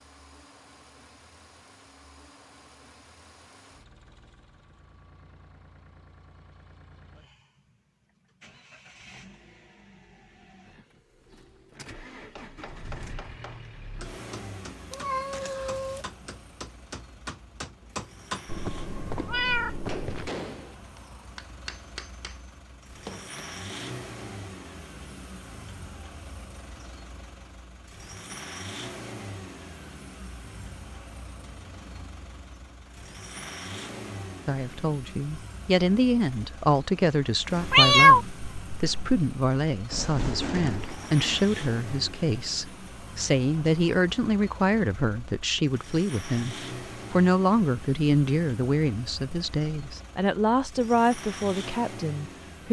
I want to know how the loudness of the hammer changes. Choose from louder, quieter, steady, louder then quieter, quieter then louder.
louder then quieter.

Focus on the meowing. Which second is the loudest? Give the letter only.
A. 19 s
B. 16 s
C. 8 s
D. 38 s
D.